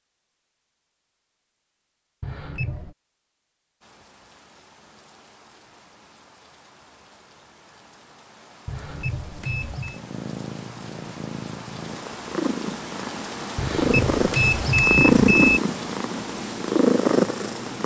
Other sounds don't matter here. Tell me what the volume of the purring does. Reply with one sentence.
The volume of the purring goes up.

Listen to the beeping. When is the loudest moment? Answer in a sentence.
The volume of the beeping peaks at 15 seconds.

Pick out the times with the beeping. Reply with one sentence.
The beeping can be heard from 2.2 to 3.0 s, from 8.7 to 10.0 s and from 13.6 to 15.6 s.